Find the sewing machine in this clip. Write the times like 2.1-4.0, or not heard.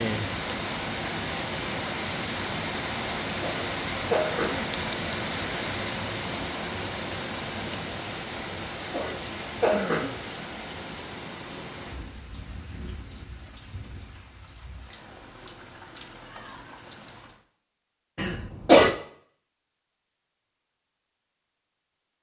not heard.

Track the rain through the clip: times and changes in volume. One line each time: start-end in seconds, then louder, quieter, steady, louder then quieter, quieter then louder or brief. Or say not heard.
0.0-17.4 quieter.